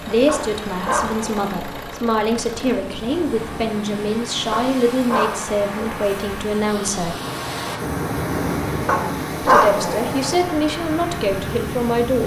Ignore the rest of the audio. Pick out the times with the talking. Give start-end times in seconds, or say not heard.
0.0-7.2, 9.4-12.2.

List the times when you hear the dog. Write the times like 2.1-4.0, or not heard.
0.2-1.8, 4.5-6.0, 8.8-10.3.